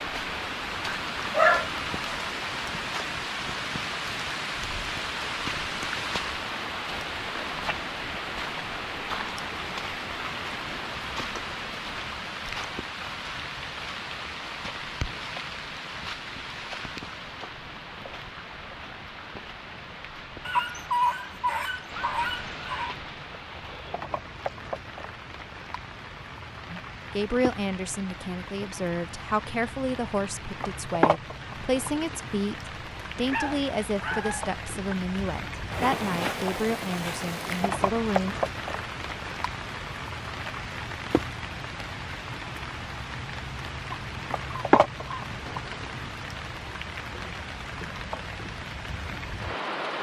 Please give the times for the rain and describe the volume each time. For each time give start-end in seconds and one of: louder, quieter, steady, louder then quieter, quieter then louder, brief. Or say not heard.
0.0-49.9 quieter then louder.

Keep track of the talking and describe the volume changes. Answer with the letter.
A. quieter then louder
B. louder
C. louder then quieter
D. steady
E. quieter
D.